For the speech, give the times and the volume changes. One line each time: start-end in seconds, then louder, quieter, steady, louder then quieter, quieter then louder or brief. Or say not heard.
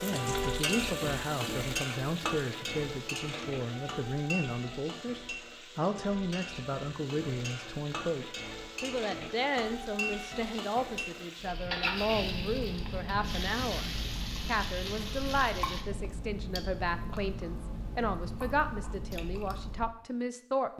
0.0-20.7 steady.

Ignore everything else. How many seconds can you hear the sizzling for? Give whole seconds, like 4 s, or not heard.
16 s.